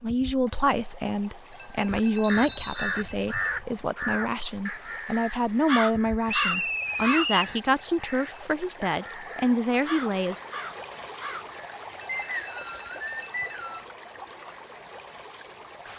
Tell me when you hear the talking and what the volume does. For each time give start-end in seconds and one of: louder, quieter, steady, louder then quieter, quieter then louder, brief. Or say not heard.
0.0-10.4 steady.